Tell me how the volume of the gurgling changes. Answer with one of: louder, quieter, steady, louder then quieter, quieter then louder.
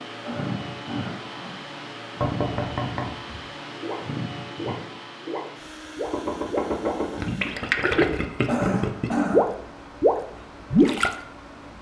louder.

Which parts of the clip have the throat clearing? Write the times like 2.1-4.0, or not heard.
0.2-1.6, 8.4-9.5.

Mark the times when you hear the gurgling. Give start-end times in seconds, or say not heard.
3.7-11.2.